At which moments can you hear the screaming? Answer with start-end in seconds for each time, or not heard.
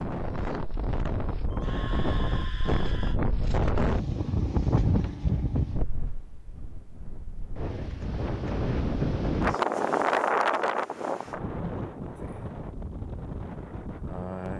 1.5-3.2.